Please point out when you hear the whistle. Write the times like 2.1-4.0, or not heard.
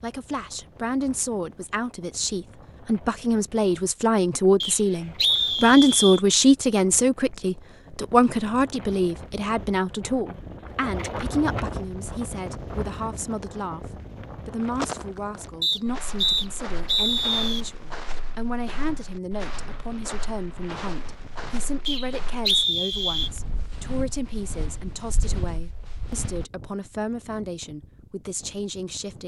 4.6-6.2, 15.6-17.6, 21.9-23.3.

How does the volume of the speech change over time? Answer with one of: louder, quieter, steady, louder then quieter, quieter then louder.
quieter.